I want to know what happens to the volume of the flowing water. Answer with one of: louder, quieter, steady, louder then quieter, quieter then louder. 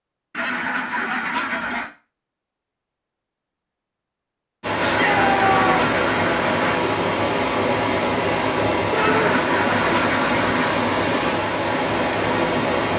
steady.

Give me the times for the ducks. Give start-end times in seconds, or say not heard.
0.3-1.9, 4.8-6.8, 8.9-10.8.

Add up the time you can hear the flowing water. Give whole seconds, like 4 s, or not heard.
8 s.